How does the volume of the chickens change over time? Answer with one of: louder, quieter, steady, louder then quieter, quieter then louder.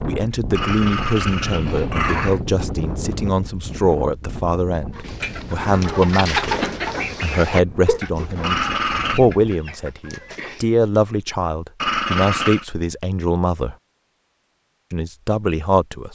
louder then quieter.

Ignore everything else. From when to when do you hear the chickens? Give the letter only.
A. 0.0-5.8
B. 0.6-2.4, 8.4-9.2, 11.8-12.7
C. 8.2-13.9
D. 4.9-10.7
D.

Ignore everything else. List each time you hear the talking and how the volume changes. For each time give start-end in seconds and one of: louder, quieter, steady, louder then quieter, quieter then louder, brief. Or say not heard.
0.1-13.8 steady
14.9-16.1 brief.